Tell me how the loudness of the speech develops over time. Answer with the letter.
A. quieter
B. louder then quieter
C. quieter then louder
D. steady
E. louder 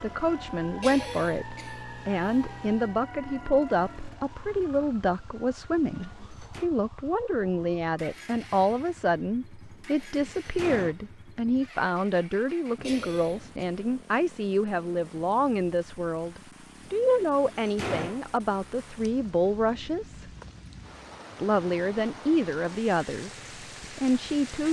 D.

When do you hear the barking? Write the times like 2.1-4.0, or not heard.
not heard.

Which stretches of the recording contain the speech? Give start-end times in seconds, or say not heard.
0.0-20.3, 21.4-24.6.